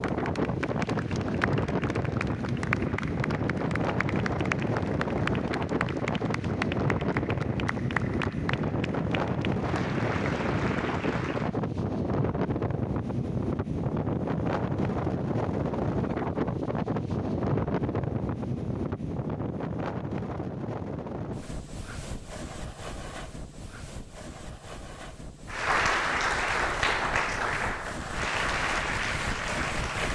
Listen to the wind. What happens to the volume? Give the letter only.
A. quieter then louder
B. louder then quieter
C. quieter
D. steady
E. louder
C.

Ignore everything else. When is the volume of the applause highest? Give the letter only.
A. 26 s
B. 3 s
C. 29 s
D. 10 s
A.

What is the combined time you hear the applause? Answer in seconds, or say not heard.
16 s.